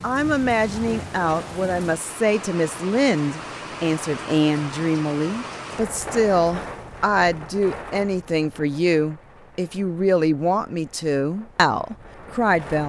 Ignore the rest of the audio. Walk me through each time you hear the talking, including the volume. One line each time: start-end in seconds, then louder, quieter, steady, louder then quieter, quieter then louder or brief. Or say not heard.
0.0-12.8 steady.